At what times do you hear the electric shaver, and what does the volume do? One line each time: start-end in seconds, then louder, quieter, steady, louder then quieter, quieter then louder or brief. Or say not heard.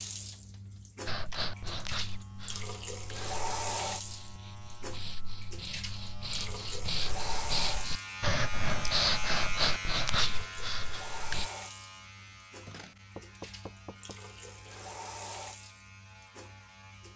0.1-17.1 louder then quieter.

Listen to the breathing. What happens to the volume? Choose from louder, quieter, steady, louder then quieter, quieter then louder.
quieter then louder.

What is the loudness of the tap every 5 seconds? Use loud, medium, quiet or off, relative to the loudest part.
loud, loud, medium, medium.